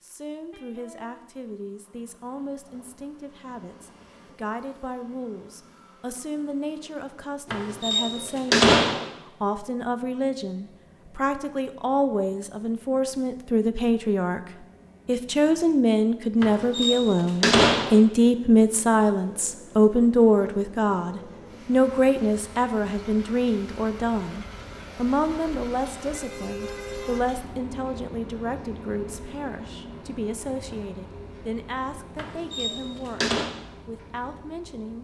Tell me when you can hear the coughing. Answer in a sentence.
You can't hear the coughing here.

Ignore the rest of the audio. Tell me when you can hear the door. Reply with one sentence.
The door can be heard from 7.5 to 9.1 s, from 16.4 to 18.0 s and from 32.1 to 33.5 s.